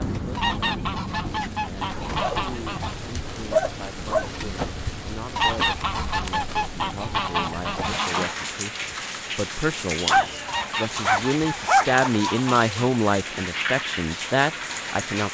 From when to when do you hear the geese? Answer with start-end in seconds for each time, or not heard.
0.3-3.0, 5.3-8.3, 10.4-13.0.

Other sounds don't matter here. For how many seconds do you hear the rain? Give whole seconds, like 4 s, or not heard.
15 s.